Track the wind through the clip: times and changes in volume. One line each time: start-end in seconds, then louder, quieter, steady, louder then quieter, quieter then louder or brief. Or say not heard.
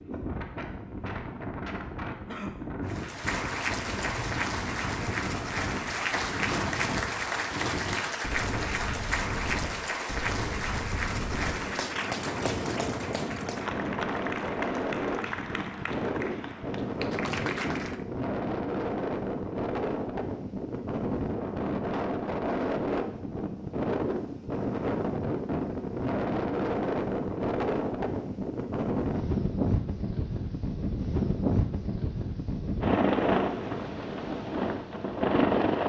0.0-35.8 louder.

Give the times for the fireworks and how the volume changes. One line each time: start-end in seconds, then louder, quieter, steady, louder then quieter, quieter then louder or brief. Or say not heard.
not heard.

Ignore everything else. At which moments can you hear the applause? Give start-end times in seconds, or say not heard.
2.9-18.0.